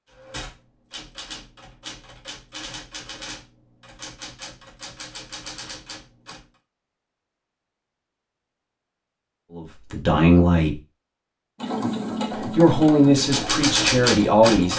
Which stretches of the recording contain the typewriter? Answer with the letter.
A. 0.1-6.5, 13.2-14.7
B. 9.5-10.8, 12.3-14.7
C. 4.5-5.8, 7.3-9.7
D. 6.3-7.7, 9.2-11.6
A.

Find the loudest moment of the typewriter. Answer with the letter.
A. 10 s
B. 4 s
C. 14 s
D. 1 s
C.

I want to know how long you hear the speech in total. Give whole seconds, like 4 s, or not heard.
4 s.